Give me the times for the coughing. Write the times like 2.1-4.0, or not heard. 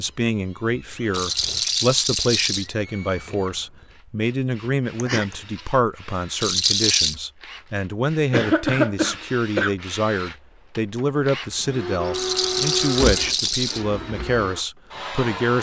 5.0-5.6, 8.3-9.8.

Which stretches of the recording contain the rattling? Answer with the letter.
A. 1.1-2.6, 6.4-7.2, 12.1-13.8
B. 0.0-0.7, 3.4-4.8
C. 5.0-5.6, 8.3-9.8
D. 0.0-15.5
A.